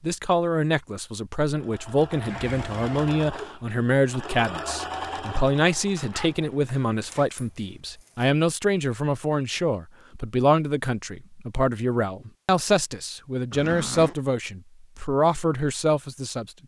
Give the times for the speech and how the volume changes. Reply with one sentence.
You can hear the speech from 0.0 to 16.5 s, at a steady volume.